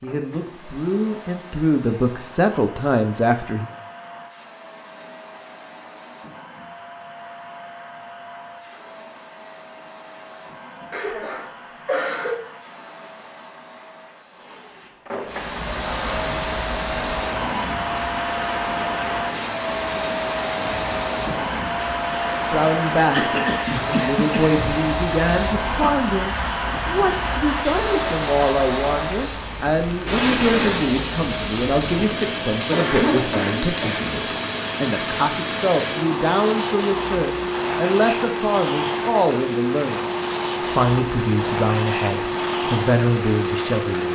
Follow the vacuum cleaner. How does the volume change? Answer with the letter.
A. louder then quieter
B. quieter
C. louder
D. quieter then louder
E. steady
C.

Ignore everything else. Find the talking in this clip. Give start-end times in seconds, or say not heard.
0.0-3.6, 22.5-44.1.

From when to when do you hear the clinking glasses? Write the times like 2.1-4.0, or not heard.
not heard.